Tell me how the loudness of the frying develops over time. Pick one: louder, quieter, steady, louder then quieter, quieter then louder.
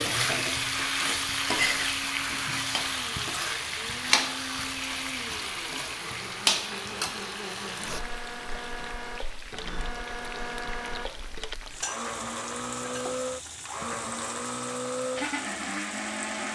quieter.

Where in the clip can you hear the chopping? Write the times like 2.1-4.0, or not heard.
not heard.